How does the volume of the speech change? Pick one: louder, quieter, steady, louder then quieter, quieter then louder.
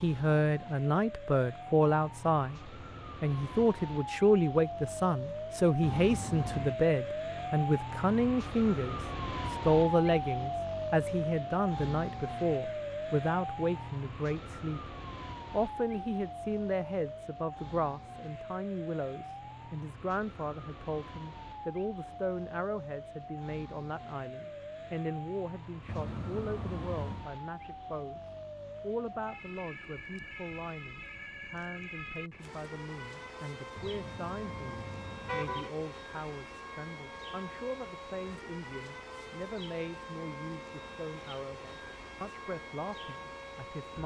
quieter.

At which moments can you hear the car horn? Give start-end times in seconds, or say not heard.
5.8-6.8, 25.9-27.3, 33.8-35.7.